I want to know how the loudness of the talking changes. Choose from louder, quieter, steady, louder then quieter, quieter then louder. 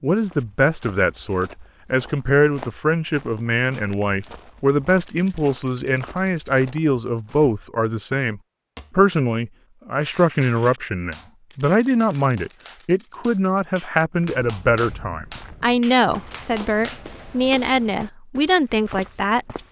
steady.